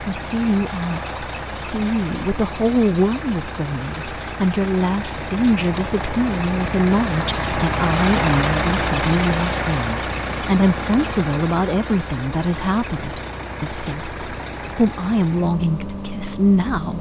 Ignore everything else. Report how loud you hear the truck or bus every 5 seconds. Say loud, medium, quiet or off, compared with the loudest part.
medium, loud, medium, medium.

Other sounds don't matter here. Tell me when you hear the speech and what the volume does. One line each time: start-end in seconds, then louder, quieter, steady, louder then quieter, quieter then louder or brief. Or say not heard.
0.0-16.9 steady.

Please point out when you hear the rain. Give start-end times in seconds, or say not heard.
not heard.